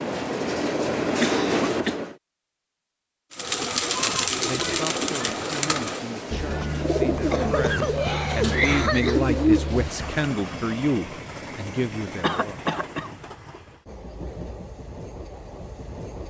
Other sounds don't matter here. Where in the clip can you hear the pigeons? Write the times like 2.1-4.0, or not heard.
3.3-10.2.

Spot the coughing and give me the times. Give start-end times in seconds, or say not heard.
1.0-1.9, 7.2-9.2, 12.2-13.1.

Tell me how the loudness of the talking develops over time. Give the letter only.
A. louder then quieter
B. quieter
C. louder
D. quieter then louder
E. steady
C.